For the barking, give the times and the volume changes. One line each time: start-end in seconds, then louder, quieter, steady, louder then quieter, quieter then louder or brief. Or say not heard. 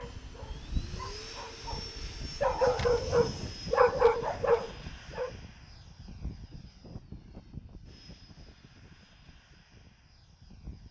0.0-5.3 louder.